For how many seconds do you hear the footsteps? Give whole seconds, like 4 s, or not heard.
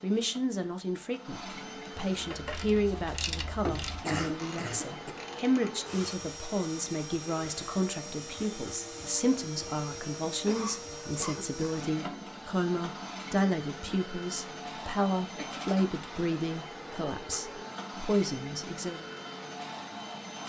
not heard.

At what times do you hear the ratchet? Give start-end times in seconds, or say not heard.
2.1-5.8.